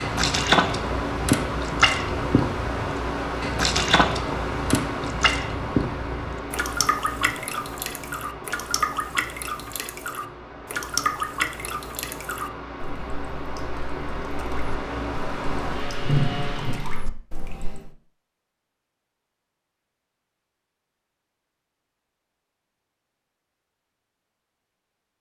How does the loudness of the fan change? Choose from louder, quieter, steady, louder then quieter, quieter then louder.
quieter then louder.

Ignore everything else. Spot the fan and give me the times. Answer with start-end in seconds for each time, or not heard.
0.0-17.1.